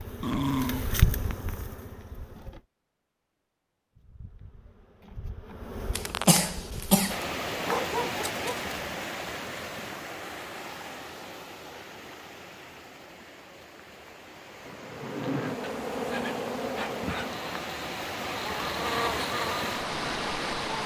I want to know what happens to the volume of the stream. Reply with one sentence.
The loudness of the stream goes down, then up.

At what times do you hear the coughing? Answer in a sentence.
The coughing can be heard from 6.0 to 7.2 s.